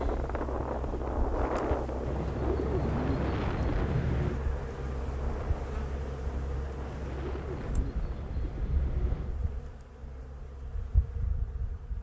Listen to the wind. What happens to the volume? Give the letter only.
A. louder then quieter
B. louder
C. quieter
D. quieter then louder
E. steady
C.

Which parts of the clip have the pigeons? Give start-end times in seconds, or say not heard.
2.0-4.4, 7.0-9.4.